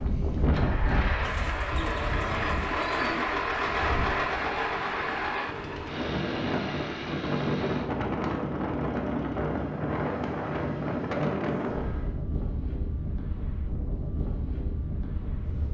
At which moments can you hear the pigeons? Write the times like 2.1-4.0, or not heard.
1.2-3.2.